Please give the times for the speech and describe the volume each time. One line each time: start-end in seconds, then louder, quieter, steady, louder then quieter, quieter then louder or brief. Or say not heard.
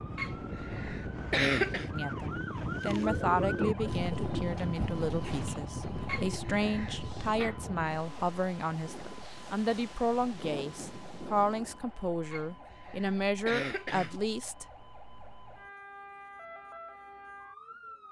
1.9-14.7 steady.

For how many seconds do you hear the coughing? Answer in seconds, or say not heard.
5 s.